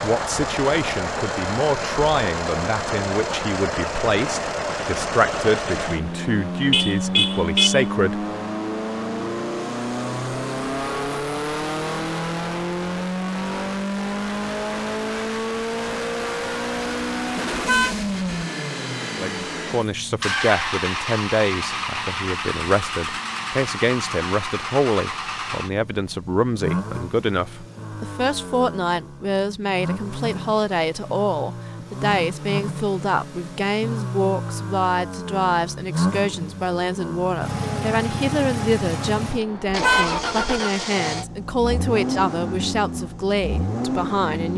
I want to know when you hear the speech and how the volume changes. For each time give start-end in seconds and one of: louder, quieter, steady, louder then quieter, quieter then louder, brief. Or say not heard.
0.0-8.2 steady
19.1-44.5 steady.